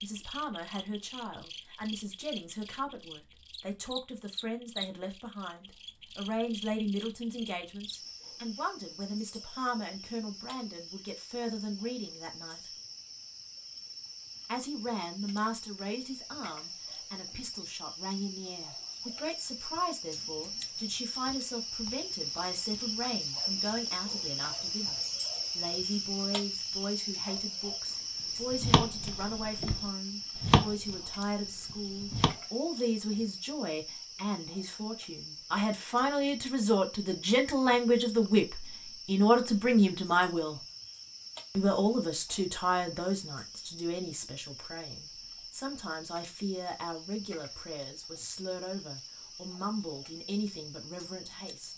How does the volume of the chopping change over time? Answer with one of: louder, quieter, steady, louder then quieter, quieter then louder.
louder then quieter.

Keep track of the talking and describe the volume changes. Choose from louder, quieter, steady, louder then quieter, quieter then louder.
louder then quieter.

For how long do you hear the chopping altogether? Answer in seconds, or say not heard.
4 s.